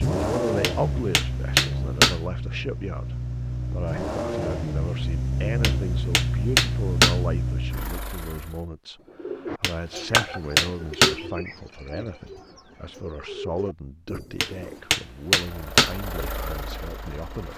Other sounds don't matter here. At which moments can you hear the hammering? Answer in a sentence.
The hammering can be heard from 0.6 to 2.1 s, from 5.6 to 7.2 s, from 9.6 to 11.2 s and from 14.4 to 15.9 s.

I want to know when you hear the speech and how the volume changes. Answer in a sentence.
The speech can be heard from 0.0 to 17.5 s, getting quieter.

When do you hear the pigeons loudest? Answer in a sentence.
The volume of the pigeons peaks at 10 seconds.